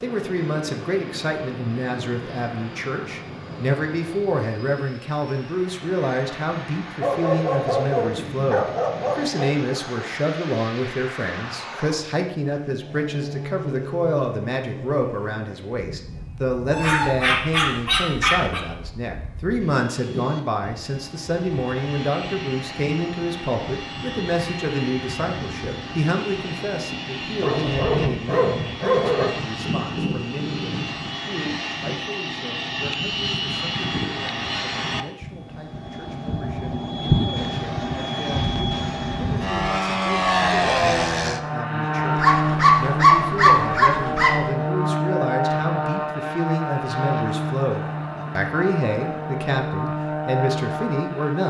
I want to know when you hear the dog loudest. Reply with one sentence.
The loudest moment of the dog is at 43 seconds.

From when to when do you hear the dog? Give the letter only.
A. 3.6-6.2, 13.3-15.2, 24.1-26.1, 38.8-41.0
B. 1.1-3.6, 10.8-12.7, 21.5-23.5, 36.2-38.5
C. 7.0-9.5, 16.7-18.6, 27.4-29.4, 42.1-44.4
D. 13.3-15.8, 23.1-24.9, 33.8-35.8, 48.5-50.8
C.